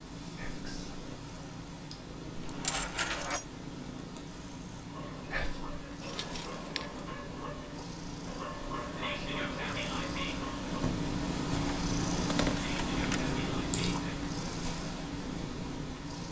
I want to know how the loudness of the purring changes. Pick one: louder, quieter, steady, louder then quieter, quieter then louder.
louder.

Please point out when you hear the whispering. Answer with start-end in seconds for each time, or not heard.
0.3-1.0, 5.3-5.8, 8.9-10.6, 12.6-14.1.